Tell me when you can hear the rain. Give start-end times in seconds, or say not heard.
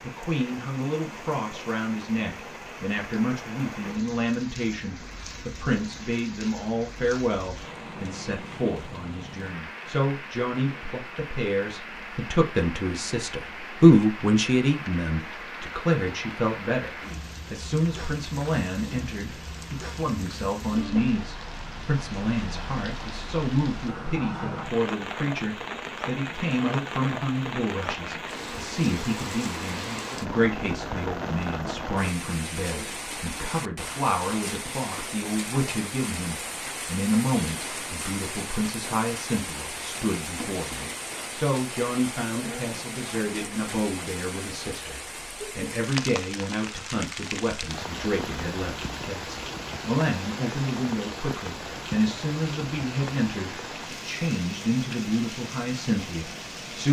0.0-56.8.